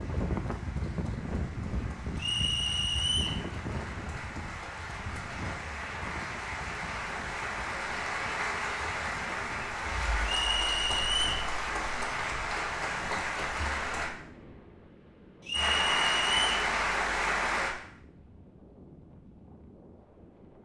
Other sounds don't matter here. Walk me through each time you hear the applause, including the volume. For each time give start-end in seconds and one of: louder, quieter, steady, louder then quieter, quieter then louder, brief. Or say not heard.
0.0-14.1 louder
15.5-17.8 brief.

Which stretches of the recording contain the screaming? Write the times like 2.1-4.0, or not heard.
not heard.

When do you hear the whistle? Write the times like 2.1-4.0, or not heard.
2.1-3.4, 10.2-11.4, 15.4-16.6.